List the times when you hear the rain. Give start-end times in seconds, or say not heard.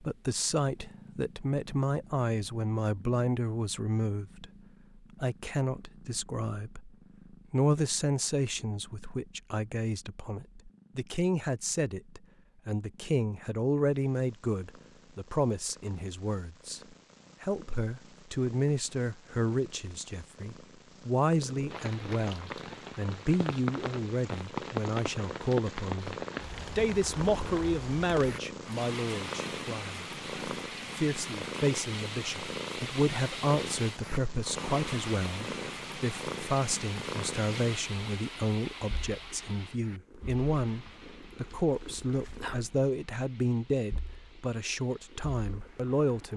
21.7-46.3.